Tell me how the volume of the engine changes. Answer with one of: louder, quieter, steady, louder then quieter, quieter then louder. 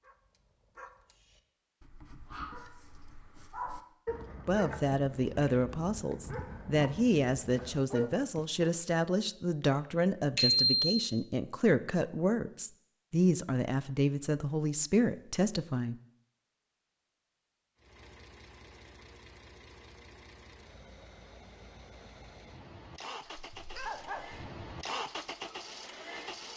louder.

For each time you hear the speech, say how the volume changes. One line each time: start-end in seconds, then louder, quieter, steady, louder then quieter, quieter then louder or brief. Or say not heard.
4.5-15.9 steady.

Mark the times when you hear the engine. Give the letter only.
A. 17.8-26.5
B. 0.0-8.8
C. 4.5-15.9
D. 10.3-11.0
A.